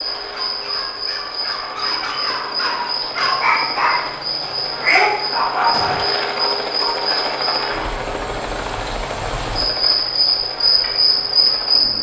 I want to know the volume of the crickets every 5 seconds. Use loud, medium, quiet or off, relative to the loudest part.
medium, medium, loud.